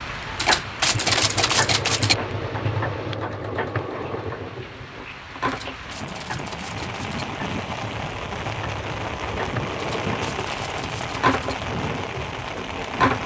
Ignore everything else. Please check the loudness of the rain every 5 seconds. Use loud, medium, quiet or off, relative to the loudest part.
medium, loud, loud.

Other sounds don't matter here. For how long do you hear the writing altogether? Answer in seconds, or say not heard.
not heard.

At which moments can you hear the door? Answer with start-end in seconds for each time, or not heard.
not heard.